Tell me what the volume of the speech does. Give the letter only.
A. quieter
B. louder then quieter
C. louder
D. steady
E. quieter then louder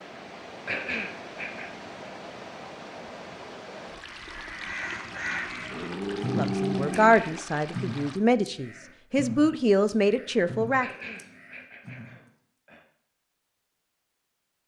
E.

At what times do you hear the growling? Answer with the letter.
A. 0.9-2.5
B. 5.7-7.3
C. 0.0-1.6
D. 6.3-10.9
B.